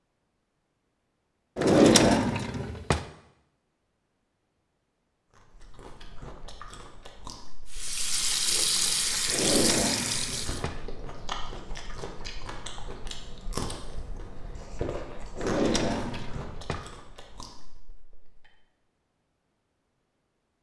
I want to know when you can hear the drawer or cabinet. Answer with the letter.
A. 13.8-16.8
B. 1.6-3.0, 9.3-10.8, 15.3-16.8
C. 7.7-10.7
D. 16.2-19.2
B.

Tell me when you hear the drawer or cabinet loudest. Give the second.
2 s.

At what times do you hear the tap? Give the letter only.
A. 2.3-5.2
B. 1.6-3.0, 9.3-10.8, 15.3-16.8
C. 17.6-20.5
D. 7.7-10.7
D.